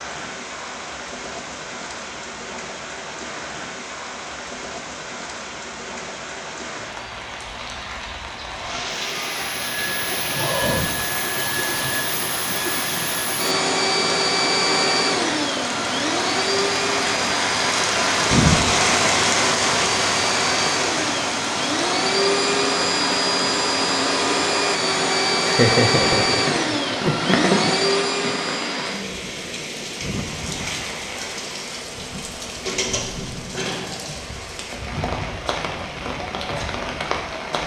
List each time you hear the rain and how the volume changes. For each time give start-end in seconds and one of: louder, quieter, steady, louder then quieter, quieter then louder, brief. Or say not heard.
0.0-37.6 louder then quieter.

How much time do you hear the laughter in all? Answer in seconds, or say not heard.
2 s.